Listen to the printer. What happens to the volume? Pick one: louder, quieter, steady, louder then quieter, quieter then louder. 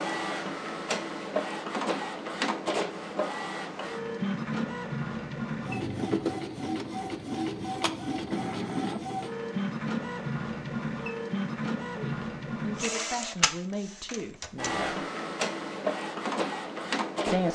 steady.